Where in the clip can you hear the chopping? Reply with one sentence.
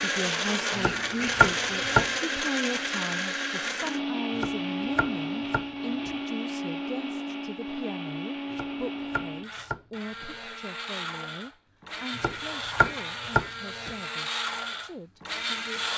You can hear the chopping from 0.8 to 2.0 s, from 4.3 to 6.1 s, from 8.5 to 10.2 s and from 12.2 to 13.9 s.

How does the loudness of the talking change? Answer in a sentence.
The volume of the talking goes down.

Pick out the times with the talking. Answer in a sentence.
You can hear the talking from 0.0 to 15.9 s.